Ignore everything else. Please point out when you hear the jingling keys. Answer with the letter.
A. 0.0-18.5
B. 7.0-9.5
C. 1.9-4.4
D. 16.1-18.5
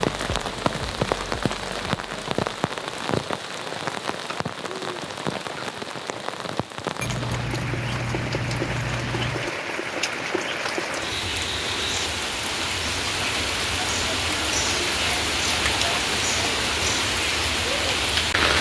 B.